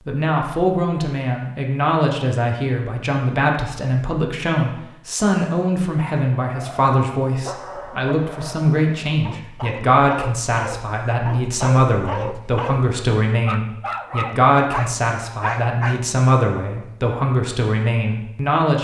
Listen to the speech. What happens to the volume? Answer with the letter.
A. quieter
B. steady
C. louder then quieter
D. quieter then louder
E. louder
B.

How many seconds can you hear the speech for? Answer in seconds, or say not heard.
19 s.